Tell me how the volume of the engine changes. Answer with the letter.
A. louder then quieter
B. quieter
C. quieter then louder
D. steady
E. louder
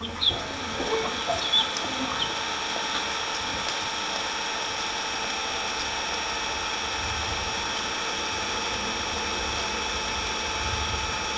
D.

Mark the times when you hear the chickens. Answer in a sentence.
You can hear the chickens from 0.0 to 2.3 s.